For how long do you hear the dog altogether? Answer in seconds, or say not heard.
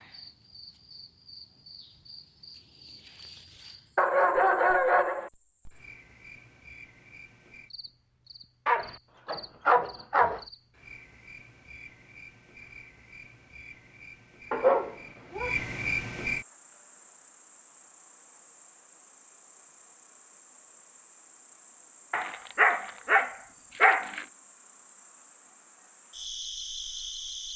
6 s.